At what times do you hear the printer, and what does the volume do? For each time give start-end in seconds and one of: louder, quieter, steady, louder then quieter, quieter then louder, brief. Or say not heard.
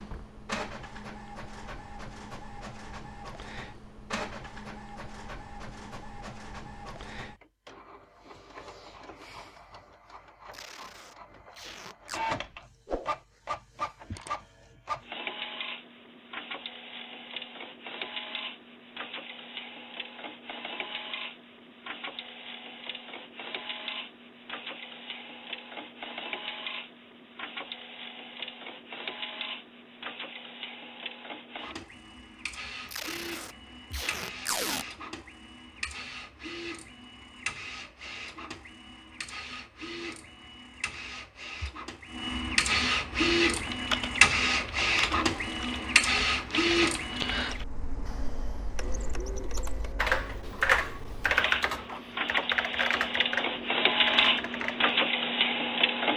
0.0-56.1 louder.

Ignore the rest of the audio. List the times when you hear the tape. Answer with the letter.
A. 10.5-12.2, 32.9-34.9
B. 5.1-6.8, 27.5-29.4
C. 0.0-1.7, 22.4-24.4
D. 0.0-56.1
A.